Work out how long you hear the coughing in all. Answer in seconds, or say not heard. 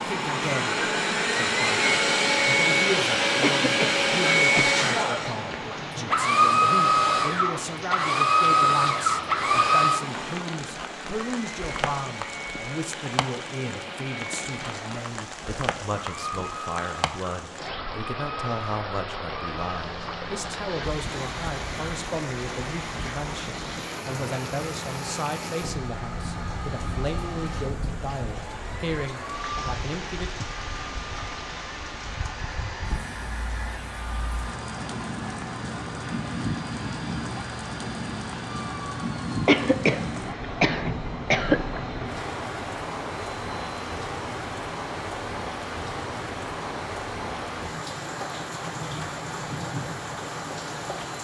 4 s.